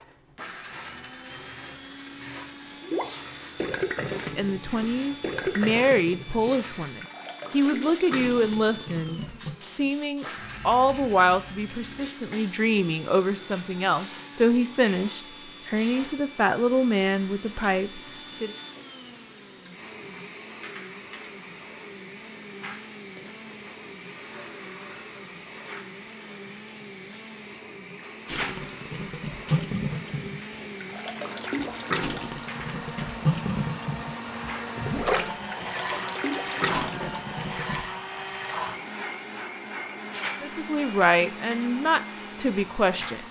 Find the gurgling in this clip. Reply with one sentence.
You can hear the gurgling from 2.8 to 9.6 s and from 28.2 to 37.9 s.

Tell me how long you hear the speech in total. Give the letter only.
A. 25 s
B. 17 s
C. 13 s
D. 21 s
B.